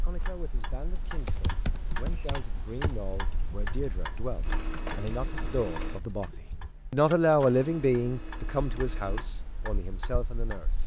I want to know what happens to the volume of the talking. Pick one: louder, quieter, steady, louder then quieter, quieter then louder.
louder then quieter.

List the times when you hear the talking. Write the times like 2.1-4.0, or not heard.
0.0-10.8.